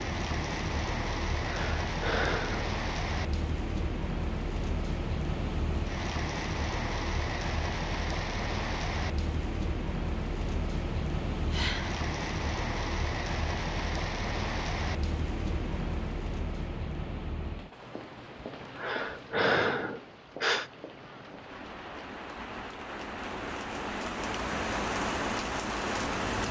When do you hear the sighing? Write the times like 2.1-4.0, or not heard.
1.4-2.7, 11.4-12.0, 18.8-20.7.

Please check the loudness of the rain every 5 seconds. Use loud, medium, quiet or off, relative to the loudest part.
loud, loud, loud, medium, medium, loud.